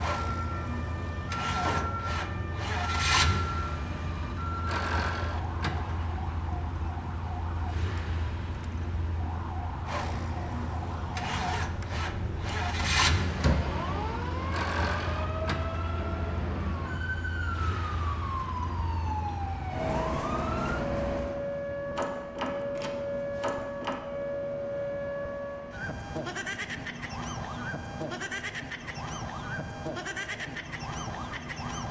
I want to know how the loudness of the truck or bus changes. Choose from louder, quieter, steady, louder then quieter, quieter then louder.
quieter.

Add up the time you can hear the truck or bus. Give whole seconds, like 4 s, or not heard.
32 s.